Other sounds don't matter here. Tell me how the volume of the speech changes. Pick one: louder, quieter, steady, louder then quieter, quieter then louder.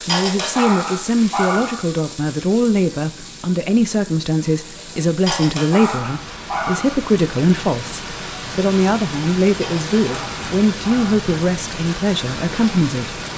steady.